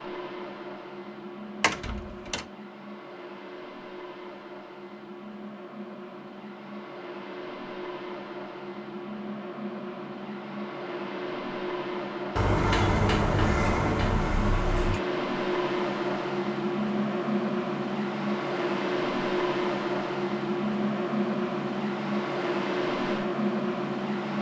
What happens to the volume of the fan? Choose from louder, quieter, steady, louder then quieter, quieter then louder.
louder.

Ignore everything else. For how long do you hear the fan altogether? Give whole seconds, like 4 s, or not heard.
24 s.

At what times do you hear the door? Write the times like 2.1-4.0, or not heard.
1.6-2.5, 12.3-15.0.